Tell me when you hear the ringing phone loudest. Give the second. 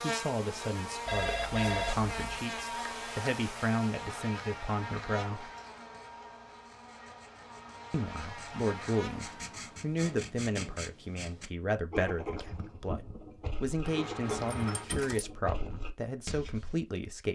2 s.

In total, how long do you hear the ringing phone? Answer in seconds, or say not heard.
2 s.